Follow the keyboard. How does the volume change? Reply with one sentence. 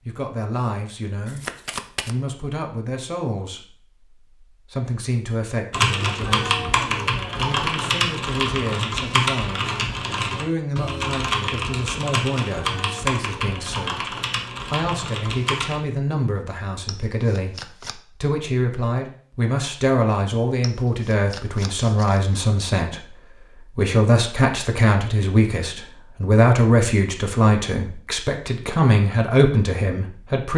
The loudness of the keyboard goes down.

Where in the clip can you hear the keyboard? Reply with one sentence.
The keyboard can be heard from 5.7 to 15.8 s.